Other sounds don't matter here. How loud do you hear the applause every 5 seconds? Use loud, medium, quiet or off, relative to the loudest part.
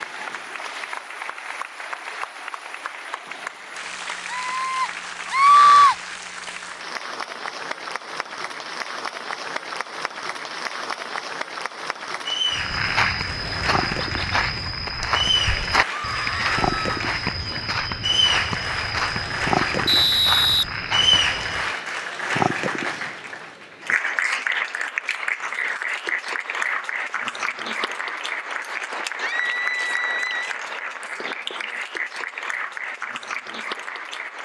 medium, medium, medium, loud, loud, loud, medium.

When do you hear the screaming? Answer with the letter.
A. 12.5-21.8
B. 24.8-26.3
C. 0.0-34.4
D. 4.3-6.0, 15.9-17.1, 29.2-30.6
D.